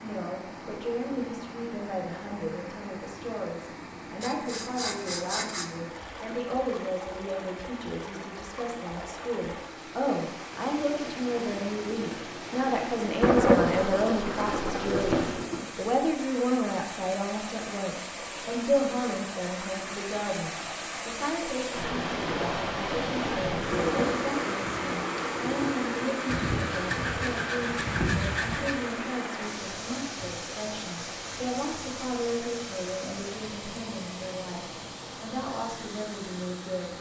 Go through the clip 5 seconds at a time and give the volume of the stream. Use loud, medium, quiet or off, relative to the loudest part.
medium, medium, medium, medium, loud, loud, medium, medium.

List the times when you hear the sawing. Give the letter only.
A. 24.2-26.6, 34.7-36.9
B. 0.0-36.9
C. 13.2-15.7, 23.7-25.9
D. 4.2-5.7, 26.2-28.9
D.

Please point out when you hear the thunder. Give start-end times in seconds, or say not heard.
13.2-15.7, 23.7-25.9.